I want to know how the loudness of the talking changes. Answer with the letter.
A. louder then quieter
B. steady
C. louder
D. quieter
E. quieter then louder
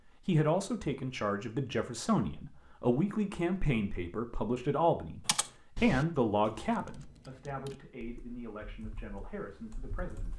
D.